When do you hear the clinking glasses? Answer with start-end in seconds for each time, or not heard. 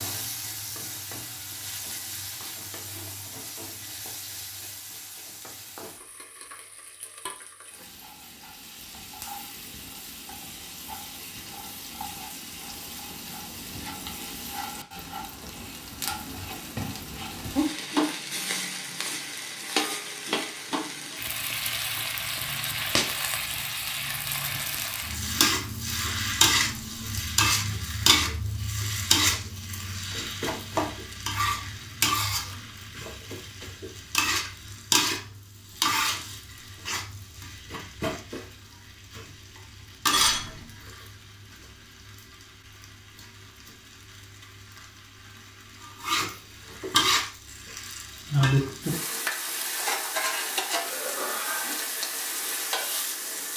40.1-40.6.